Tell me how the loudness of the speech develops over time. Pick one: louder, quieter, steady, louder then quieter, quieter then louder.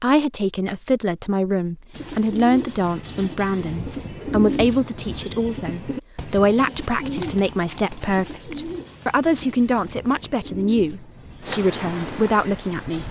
steady.